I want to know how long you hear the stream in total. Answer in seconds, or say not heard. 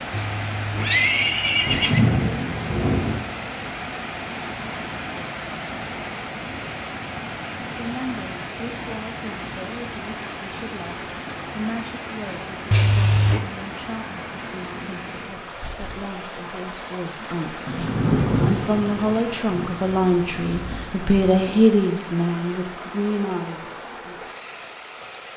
25 s.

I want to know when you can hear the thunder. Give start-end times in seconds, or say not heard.
1.6-3.1, 17.6-21.6.